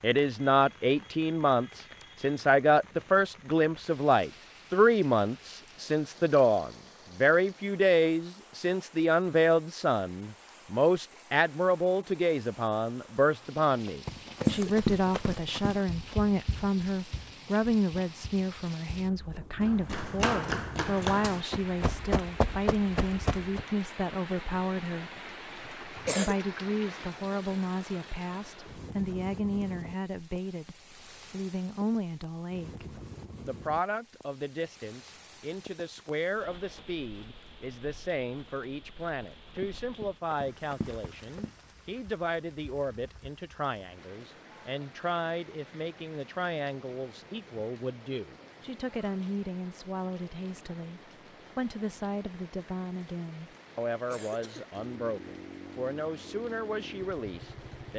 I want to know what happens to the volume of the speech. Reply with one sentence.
The volume of the speech goes down.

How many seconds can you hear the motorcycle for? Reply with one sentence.
You can hear the motorcycle for 3 seconds altogether.